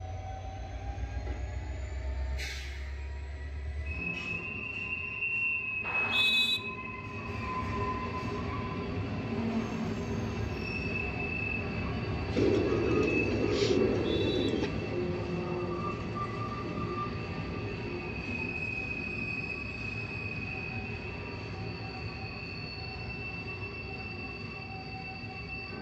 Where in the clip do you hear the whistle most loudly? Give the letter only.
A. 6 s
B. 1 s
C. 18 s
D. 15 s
A.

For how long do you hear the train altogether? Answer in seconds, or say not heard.
26 s.